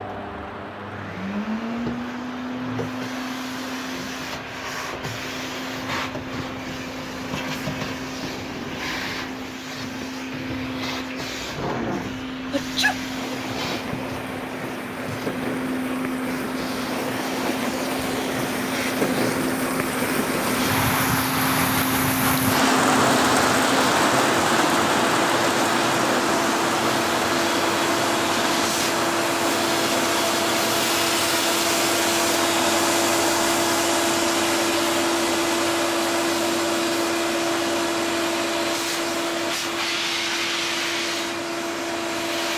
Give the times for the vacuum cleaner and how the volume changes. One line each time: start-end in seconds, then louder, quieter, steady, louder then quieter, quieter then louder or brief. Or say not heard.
0.0-42.5 louder.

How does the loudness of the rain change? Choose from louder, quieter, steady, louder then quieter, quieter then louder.
louder then quieter.